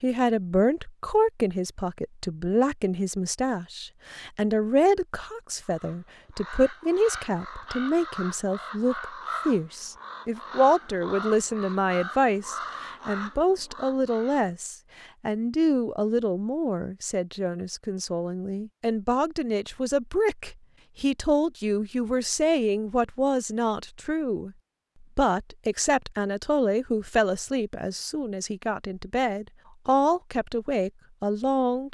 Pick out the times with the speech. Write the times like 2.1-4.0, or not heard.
0.0-24.5, 25.1-31.8.